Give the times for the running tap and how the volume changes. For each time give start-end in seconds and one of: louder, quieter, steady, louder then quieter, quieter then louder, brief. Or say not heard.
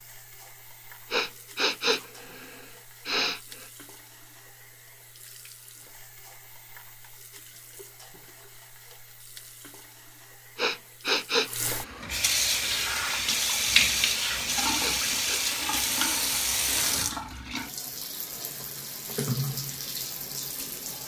0.0-21.0 louder then quieter.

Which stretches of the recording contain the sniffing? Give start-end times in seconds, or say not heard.
1.1-3.4, 10.6-11.9, 14.8-15.4.